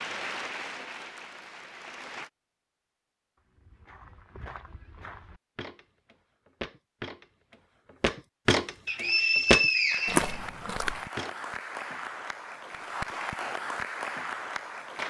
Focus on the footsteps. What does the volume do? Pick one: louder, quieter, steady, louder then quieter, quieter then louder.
louder.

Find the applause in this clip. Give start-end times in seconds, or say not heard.
0.0-2.3, 9.8-15.0.